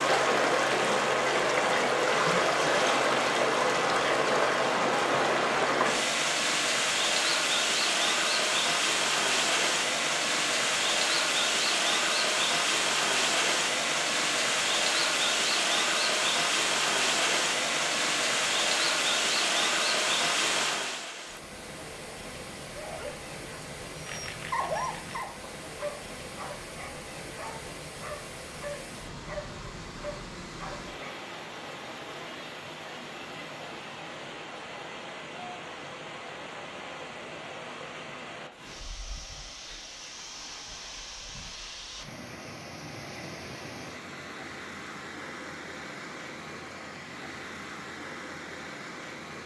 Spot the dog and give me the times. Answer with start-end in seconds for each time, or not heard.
22.8-31.1.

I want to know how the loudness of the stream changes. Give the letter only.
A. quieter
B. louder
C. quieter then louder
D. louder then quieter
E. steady
A.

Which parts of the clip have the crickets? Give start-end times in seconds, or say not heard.
not heard.